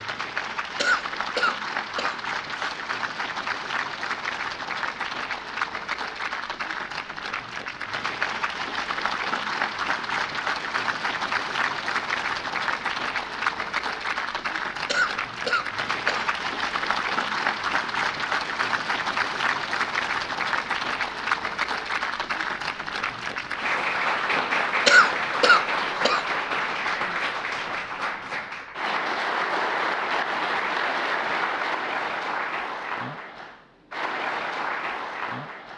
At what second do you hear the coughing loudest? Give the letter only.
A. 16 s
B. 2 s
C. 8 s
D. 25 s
D.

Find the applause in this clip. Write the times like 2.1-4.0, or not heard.
0.0-35.7.